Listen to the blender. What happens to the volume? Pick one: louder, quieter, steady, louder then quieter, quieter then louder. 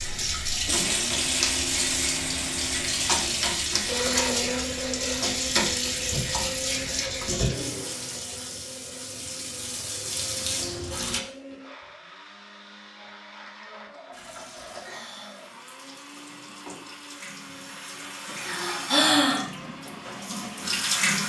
quieter.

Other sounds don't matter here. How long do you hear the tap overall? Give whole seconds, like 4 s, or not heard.
18 s.